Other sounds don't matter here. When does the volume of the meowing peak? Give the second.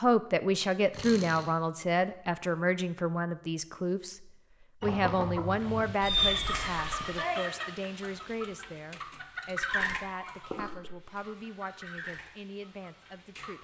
6 s.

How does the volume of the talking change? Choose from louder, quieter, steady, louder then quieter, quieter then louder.
quieter.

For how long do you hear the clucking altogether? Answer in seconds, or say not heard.
9 s.